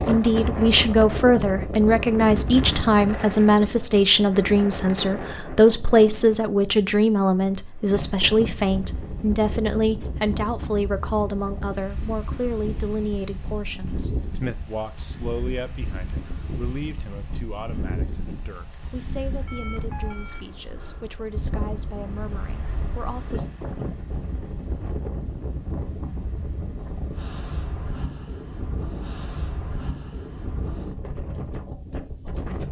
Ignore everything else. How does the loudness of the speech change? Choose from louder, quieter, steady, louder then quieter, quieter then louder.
quieter.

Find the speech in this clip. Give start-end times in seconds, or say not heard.
0.1-23.5.